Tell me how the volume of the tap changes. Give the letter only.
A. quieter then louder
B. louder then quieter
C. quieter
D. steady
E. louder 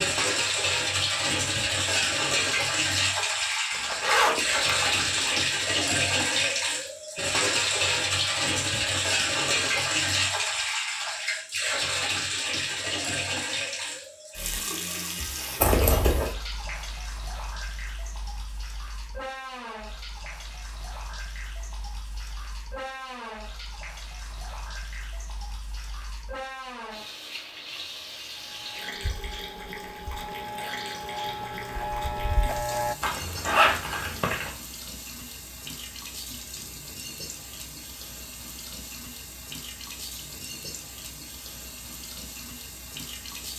C.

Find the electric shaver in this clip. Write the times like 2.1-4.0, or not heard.
28.4-33.0.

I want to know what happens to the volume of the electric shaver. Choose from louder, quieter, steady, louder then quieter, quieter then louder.
louder.